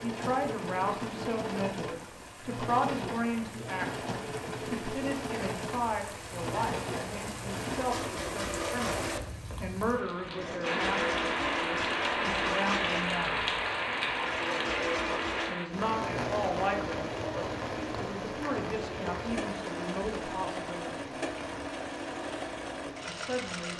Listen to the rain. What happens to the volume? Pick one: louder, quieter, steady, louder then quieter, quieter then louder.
louder then quieter.